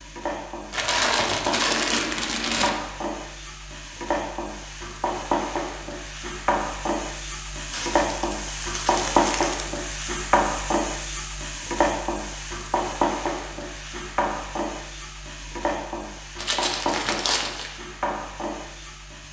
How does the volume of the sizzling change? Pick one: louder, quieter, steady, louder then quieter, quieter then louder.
louder then quieter.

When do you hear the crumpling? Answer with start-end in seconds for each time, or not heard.
0.7-2.7, 7.7-9.7, 16.4-17.7.